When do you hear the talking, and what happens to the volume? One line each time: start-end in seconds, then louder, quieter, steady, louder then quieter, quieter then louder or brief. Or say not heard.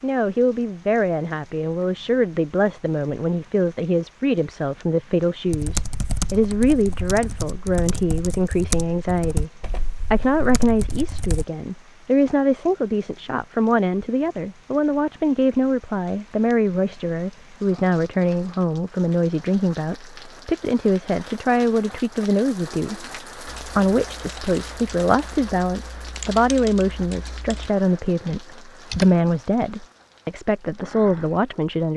0.0-31.9 steady.